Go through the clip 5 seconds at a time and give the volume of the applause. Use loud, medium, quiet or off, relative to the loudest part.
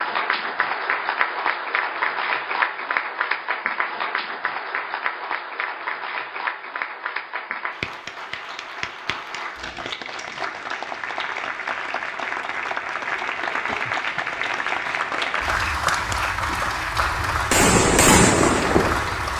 loud, medium, loud, loud.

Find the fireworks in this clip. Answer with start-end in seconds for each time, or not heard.
15.7-16.7, 17.5-19.2.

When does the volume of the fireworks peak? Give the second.
18 s.